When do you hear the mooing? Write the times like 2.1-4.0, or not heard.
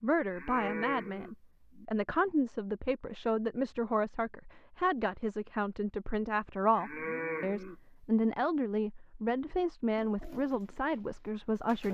0.3-1.9, 6.8-8.3.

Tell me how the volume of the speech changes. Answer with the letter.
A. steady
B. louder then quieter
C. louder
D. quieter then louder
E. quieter
A.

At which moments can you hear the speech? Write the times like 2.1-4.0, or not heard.
0.0-11.8.